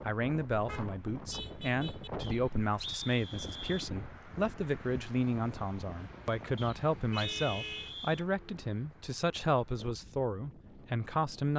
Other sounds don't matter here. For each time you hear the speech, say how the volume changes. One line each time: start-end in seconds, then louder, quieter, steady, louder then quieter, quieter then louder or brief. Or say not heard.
0.1-11.5 steady.